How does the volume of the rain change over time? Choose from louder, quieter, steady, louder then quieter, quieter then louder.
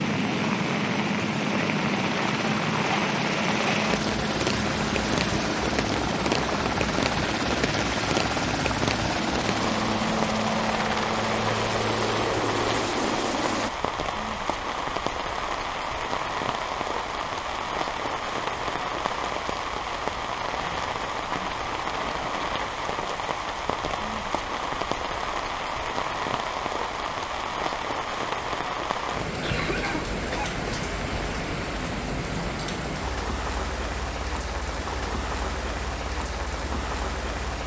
steady.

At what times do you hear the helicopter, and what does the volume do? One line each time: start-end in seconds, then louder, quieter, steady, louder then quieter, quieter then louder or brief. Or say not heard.
0.0-13.7 steady.